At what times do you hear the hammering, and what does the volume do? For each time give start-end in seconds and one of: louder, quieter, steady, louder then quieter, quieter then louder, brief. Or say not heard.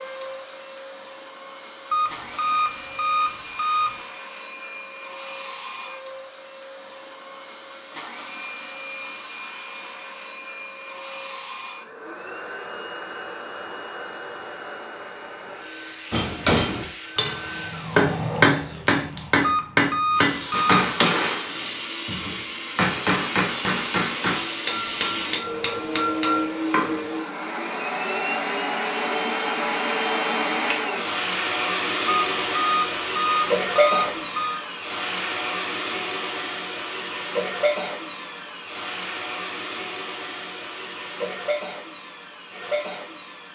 16.1-27.0 quieter.